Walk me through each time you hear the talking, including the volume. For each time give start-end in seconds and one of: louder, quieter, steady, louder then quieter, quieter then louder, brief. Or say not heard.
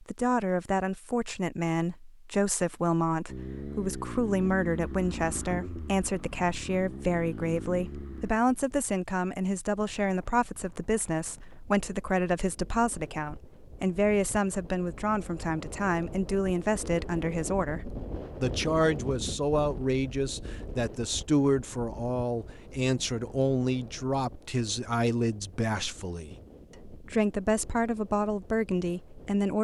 0.0-29.5 steady.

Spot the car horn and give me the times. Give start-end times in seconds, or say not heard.
not heard.